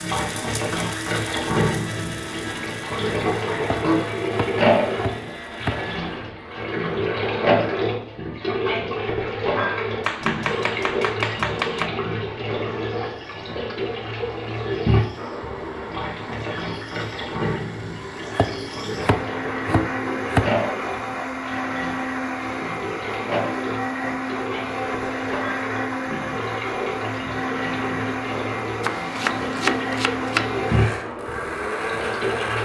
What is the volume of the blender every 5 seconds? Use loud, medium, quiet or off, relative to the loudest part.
medium, medium, quiet, medium, loud, loud, loud.